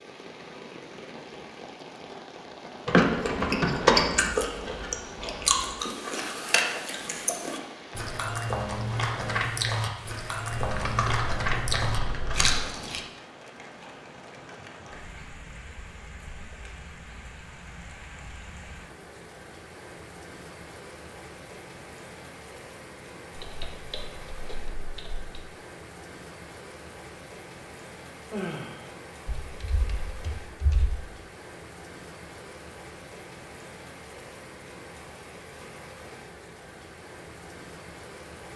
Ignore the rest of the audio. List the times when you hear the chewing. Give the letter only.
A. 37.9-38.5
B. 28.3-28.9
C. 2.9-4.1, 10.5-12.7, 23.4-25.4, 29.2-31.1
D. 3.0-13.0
D.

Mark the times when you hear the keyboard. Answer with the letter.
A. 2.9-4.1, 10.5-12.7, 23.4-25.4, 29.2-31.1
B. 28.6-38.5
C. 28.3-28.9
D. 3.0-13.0
A.